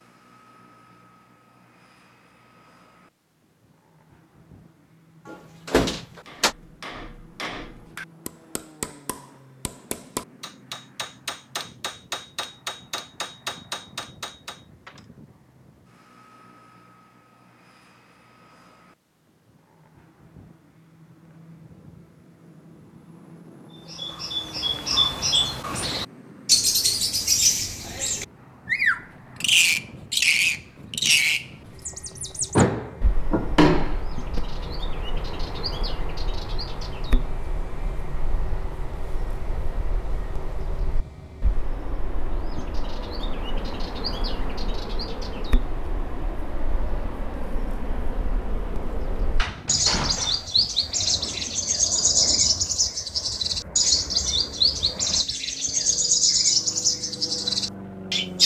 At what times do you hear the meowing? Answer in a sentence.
The meowing can't be heard in this clip.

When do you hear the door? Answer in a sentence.
The door can be heard from 5.2 to 6.5 s, from 32.5 to 34.4 s and from 49.4 to 50.5 s.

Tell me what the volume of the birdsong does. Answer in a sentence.
The loudness of the birdsong goes down, then up.